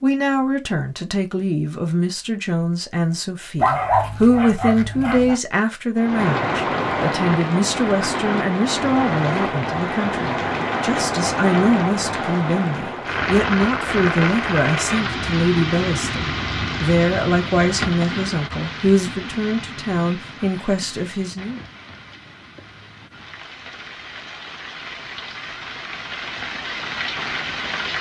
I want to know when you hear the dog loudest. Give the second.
4 s.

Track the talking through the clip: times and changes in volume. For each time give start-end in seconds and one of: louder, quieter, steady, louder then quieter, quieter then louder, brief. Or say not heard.
0.0-21.6 steady.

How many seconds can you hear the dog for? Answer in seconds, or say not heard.
2 s.